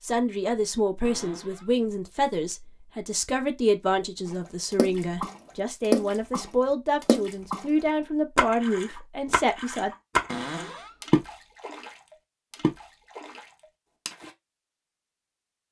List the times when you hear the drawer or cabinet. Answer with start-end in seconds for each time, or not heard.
1.0-1.7, 10.2-10.9.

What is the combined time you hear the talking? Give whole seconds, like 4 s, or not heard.
10 s.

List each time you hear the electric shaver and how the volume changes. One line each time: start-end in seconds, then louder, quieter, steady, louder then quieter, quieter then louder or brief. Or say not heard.
not heard.